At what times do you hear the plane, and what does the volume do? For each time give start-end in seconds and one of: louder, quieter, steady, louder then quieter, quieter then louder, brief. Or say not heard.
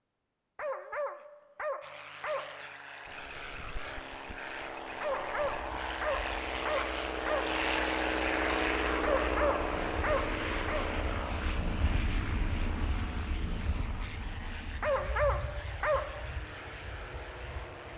1.8-17.9 louder then quieter.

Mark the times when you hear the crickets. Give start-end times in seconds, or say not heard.
3.0-17.9.